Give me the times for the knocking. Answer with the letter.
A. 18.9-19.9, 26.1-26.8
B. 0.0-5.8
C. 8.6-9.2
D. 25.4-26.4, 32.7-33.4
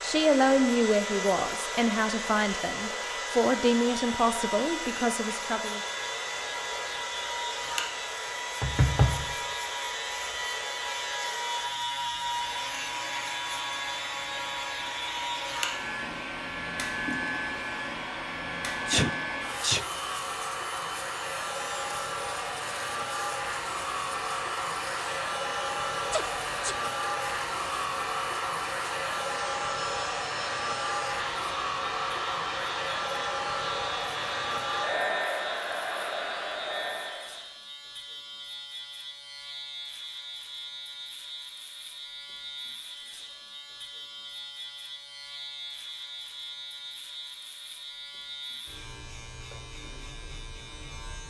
C.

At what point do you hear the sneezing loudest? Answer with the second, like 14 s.
19 s.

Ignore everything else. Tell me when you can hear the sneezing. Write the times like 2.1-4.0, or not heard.
18.9-19.9, 26.1-26.8.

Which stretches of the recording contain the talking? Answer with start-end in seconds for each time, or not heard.
0.0-5.8.